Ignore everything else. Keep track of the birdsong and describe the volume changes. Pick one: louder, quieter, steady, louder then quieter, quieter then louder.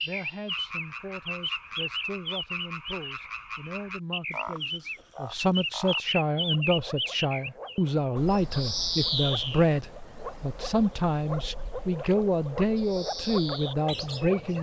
quieter then louder.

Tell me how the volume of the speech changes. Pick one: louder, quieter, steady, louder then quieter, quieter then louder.
louder.